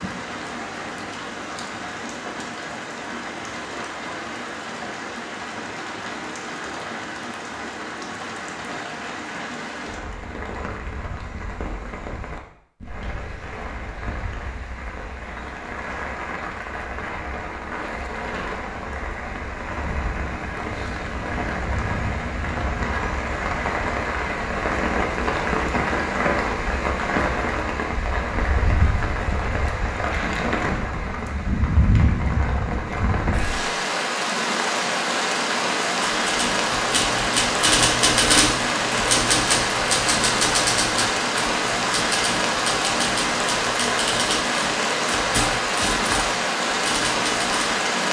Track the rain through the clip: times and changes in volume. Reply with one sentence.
You can hear the rain from 0.0 to 48.0 s, getting louder.